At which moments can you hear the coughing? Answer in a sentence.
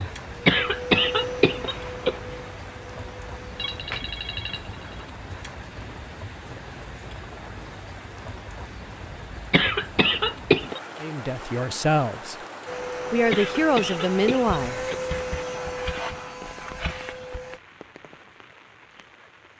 The coughing can be heard from 0.5 to 2.4 s, from 9.5 to 10.8 s and from 13.3 to 15.1 s.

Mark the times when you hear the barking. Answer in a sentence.
The barking can't be heard in this clip.